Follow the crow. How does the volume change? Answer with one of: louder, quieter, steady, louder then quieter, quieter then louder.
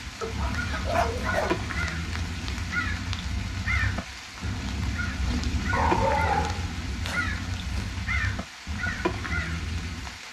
steady.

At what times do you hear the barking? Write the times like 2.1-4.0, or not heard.
0.2-1.6, 5.7-7.8.